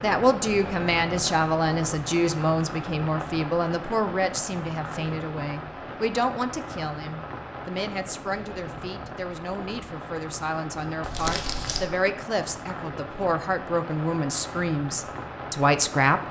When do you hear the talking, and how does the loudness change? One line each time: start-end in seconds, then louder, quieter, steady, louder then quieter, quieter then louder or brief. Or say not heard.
0.0-16.2 quieter then louder.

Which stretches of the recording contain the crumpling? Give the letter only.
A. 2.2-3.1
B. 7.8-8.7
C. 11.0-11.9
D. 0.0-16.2
C.